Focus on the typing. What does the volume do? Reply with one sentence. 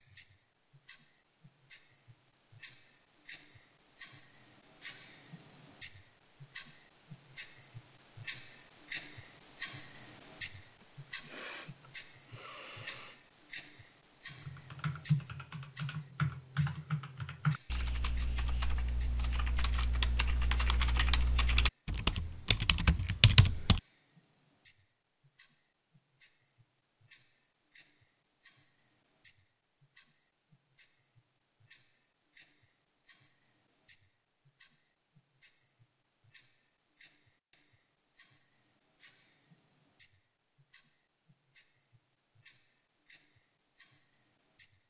The loudness of the typing goes down, then up.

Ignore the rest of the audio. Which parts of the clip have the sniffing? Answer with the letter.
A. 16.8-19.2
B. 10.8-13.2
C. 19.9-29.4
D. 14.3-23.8
B.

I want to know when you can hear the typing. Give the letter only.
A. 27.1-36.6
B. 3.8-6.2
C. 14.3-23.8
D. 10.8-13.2
C.